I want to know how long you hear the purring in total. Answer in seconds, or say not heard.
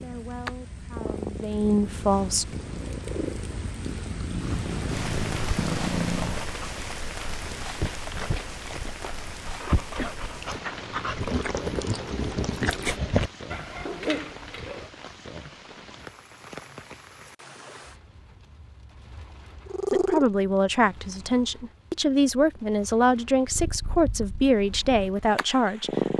11 s.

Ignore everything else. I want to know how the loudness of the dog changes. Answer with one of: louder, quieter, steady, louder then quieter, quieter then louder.
louder.